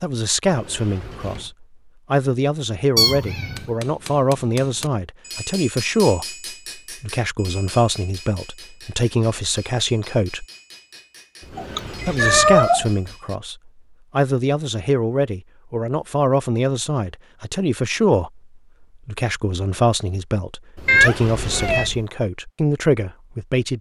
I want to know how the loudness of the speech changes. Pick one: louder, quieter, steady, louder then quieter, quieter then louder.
steady.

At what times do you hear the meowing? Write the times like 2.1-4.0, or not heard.
3.0-3.6, 11.6-12.9, 20.9-21.9.